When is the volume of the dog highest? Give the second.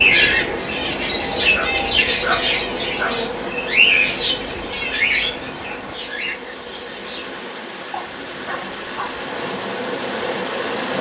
2 s.